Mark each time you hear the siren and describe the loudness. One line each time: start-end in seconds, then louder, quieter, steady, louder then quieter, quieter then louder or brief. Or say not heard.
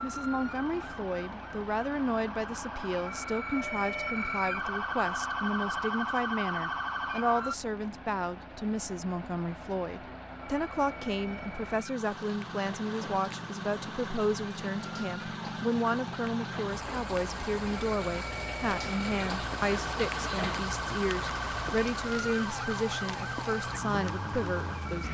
0.0-7.5 louder
10.4-25.0 louder.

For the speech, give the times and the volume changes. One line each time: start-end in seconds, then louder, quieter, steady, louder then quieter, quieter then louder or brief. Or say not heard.
0.0-25.0 steady.